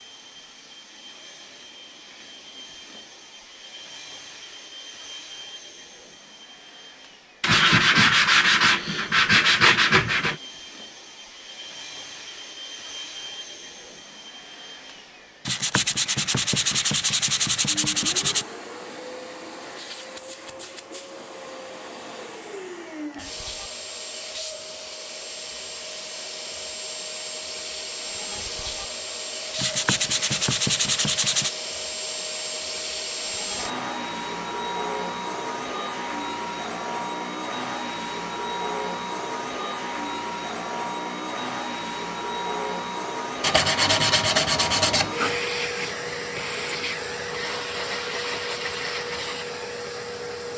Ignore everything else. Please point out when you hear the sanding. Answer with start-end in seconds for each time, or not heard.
7.4-10.3, 15.4-18.4, 29.6-31.5, 43.4-45.4.